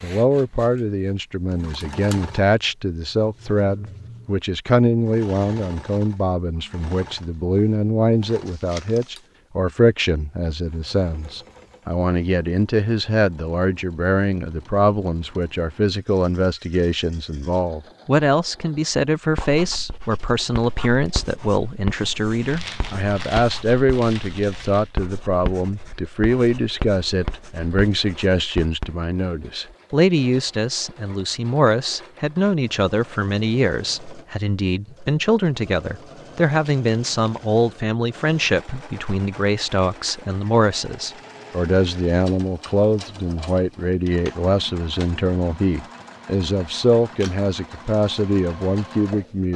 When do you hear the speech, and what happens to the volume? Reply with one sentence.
You can hear the speech from 0.0 to 49.5 s, at a steady volume.